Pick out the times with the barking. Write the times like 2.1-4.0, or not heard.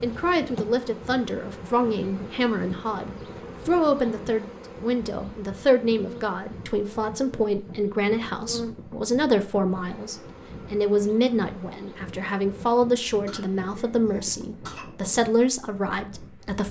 not heard.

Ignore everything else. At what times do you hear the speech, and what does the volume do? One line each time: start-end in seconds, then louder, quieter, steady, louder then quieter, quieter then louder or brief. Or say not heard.
0.0-16.6 steady.